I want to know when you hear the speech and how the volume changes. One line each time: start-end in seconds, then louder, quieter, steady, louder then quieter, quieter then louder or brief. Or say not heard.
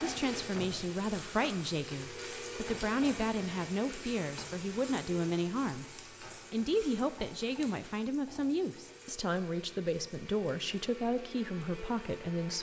0.0-12.5 steady.